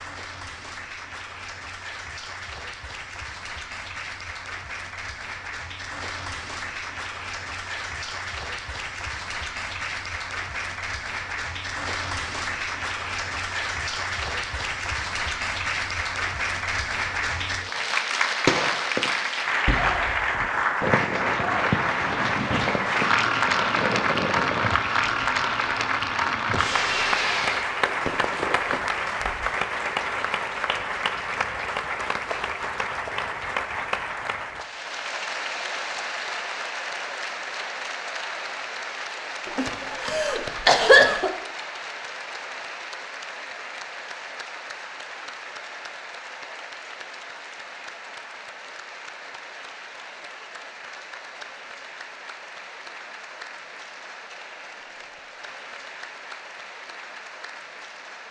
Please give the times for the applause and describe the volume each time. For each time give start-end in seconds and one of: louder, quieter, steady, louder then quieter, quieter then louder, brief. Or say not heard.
0.0-58.2 louder then quieter.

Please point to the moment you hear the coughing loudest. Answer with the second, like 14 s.
41 s.